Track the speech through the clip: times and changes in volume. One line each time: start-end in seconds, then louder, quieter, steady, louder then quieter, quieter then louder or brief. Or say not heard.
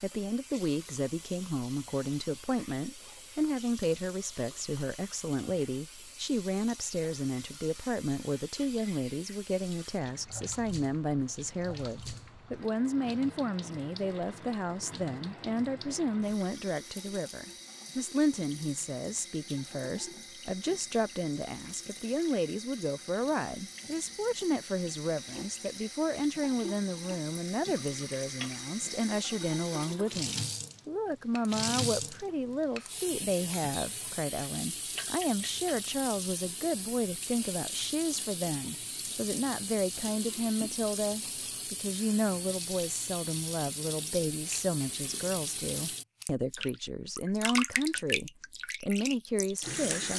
0.0-50.1 steady.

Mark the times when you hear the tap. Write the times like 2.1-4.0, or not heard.
0.0-50.1.